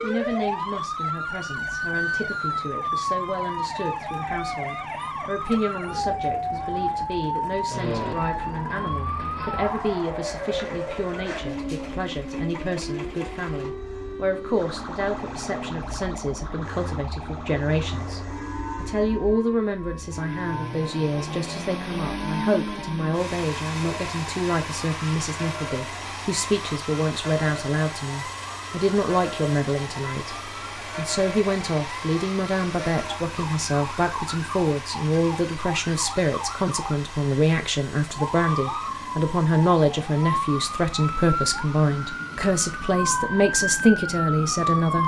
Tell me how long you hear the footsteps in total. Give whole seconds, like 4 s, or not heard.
not heard.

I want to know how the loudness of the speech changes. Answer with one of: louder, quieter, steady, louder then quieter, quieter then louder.
louder.